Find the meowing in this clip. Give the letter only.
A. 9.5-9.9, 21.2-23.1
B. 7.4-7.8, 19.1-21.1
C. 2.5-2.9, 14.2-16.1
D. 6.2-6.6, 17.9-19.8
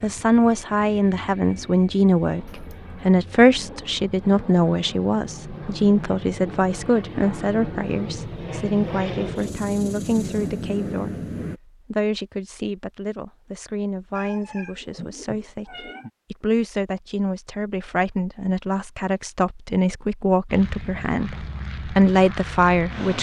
C.